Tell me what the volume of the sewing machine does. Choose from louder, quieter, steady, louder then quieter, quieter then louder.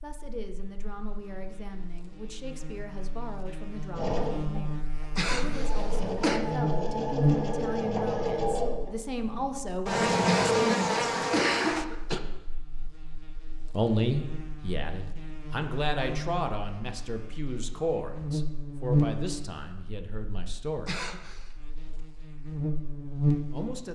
louder.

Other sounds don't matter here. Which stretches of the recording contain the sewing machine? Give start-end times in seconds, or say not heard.
3.9-11.5.